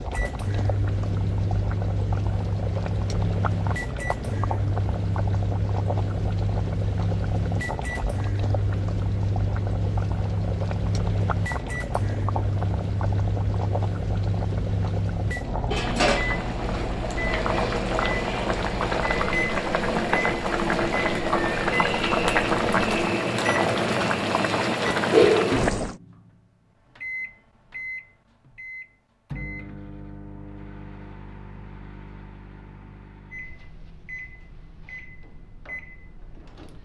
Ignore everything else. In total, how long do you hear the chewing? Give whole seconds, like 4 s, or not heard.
not heard.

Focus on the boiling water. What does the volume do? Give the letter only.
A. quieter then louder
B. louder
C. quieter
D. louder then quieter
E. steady
B.